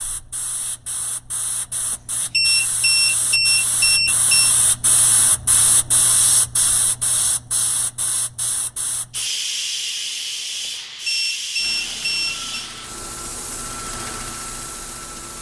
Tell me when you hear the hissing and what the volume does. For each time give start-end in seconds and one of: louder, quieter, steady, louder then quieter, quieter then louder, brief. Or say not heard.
0.0-15.3 louder then quieter.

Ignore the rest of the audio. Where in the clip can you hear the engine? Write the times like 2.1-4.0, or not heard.
11.6-15.3.